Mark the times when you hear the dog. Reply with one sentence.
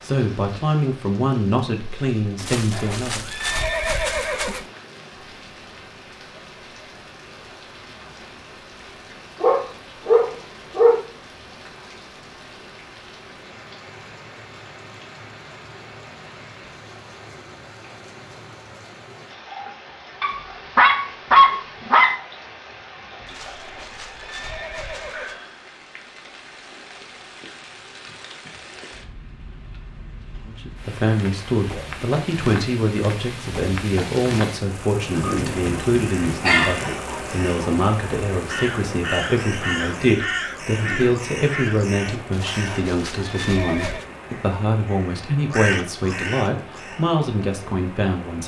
You can hear the dog from 9.4 to 11.0 s, from 20.2 to 22.1 s and from 35.2 to 37.0 s.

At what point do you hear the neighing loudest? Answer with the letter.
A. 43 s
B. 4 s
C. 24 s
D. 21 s
B.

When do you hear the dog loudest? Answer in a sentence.
The volume of the dog peaks at 21 seconds.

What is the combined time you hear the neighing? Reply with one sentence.
You can hear the neighing for 6 seconds altogether.